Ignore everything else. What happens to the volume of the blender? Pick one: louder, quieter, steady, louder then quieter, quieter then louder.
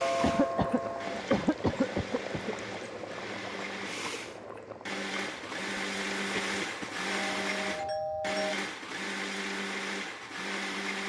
louder.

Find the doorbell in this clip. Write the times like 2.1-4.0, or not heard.
0.0-1.2, 6.5-8.6.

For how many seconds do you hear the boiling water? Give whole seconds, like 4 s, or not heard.
8 s.